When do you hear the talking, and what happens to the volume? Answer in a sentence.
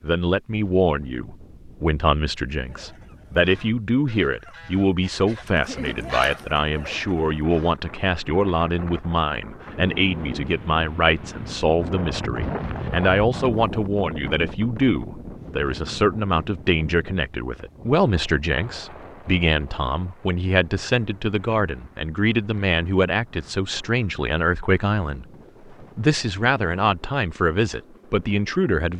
The talking can be heard from 0.0 to 28.9 s, at a steady volume.